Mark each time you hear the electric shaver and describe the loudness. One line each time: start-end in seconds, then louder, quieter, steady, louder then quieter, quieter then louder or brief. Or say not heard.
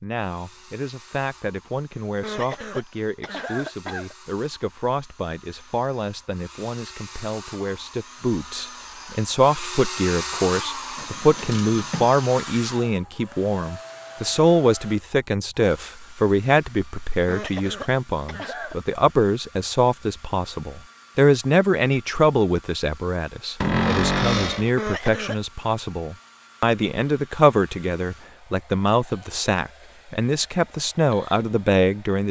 not heard.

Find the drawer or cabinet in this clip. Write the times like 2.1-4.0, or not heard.
10.9-12.2, 23.6-24.8.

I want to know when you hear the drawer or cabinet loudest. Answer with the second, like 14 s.
24 s.